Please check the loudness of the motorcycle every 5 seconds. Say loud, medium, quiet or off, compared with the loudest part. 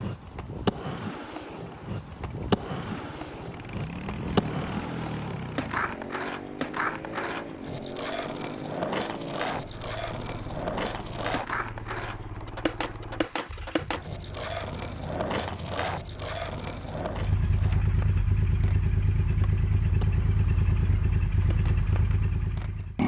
medium, medium, quiet, loud, loud.